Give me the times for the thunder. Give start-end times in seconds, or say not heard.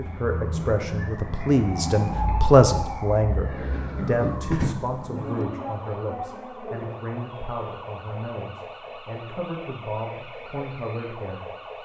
4.0-5.5.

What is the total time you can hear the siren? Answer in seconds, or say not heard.
12 s.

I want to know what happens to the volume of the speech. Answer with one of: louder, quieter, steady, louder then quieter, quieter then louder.
quieter.